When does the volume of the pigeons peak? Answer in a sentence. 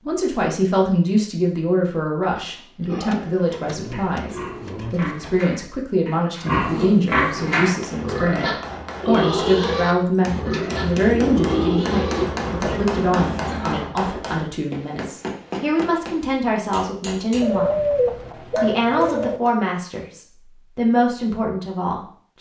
The volume of the pigeons peaks at 18 seconds.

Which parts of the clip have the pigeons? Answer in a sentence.
You can hear the pigeons from 3.1 to 5.5 s, from 10.4 to 12.3 s and from 17.4 to 19.4 s.